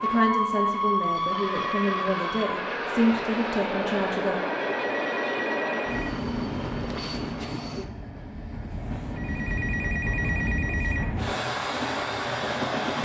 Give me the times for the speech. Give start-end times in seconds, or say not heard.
0.0-4.4.